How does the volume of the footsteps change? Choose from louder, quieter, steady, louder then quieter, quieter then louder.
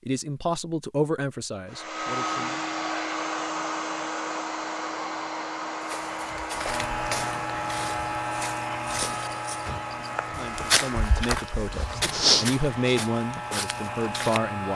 louder then quieter.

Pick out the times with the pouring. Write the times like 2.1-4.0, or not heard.
not heard.